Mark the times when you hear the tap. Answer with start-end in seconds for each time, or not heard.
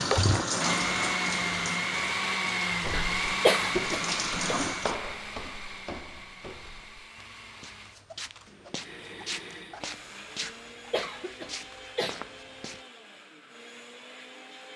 0.0-5.0.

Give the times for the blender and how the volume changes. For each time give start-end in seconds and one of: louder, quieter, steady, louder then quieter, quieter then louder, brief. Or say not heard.
0.0-14.7 quieter.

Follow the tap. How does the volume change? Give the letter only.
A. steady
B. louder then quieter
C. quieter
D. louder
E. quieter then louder
E.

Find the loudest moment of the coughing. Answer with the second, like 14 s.
4 s.